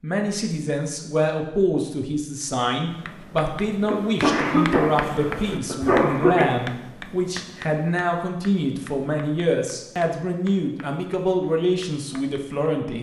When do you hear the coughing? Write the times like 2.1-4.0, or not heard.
3.9-6.5.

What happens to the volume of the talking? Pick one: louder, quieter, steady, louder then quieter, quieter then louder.
steady.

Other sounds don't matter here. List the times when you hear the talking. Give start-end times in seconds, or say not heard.
0.0-12.9.